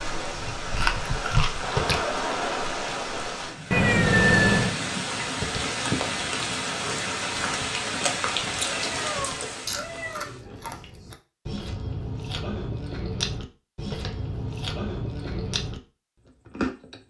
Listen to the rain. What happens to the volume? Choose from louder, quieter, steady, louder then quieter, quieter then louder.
steady.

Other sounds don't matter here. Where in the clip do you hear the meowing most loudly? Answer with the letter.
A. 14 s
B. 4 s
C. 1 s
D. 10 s
B.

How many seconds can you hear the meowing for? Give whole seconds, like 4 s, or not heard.
3 s.